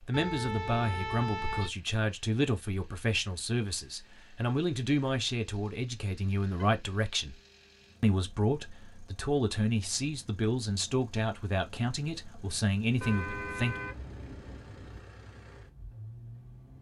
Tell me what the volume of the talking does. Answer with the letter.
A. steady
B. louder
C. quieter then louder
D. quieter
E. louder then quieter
A.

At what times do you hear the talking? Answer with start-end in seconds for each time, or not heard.
0.0-7.3, 8.0-13.8.